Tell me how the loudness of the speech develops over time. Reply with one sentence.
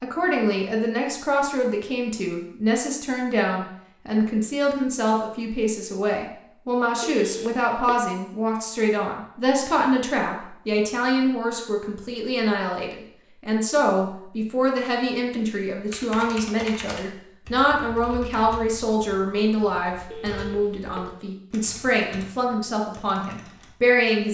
The volume of the speech stays about the same.